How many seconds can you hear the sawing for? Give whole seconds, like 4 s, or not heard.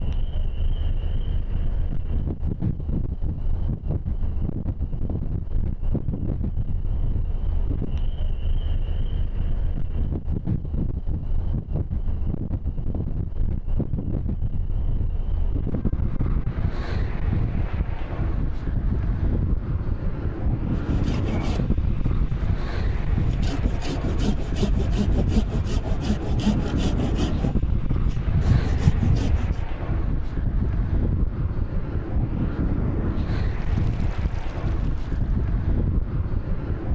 9 s.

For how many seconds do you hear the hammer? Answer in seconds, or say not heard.
not heard.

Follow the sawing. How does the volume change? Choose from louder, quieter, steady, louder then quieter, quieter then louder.
louder.